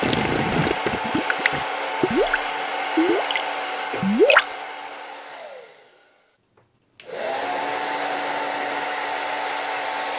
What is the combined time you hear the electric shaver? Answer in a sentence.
You can't hear the electric shaver here.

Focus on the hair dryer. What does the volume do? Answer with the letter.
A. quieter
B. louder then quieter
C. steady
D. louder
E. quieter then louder
E.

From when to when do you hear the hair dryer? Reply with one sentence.
You can hear the hair dryer from 0.0 to 10.1 s.